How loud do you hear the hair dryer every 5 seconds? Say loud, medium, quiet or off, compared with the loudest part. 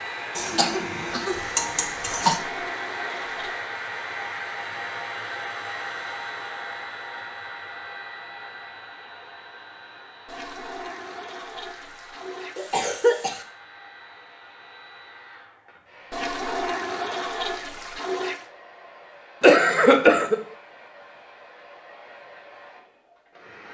loud, loud, quiet, quiet, quiet.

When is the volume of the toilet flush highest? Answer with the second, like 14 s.
17 s.